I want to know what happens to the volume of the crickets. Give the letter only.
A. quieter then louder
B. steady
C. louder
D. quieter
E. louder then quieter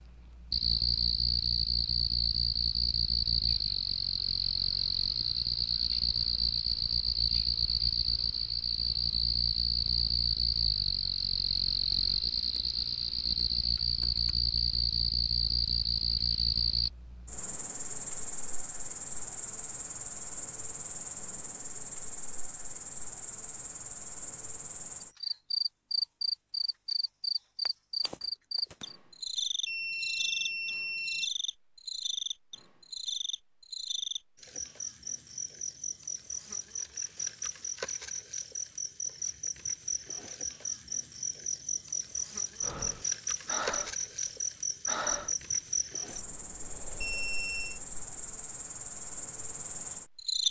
D.